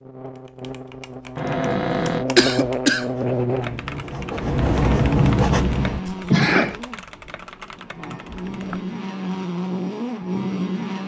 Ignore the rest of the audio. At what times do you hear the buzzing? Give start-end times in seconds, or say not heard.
0.0-11.0.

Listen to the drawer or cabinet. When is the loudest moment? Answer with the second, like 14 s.
2 s.